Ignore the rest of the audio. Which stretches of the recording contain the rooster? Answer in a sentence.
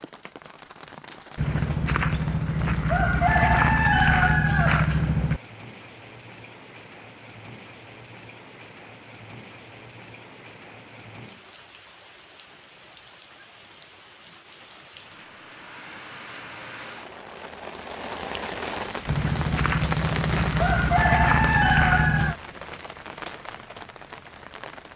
The rooster can be heard from 1.4 to 5.4 s and from 19.1 to 22.4 s.